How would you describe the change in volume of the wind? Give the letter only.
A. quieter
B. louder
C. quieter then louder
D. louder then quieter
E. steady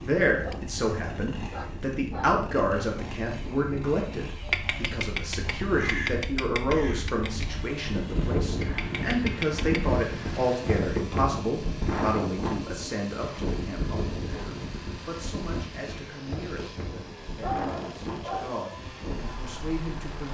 D.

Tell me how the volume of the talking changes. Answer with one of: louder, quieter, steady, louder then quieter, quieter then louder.
quieter.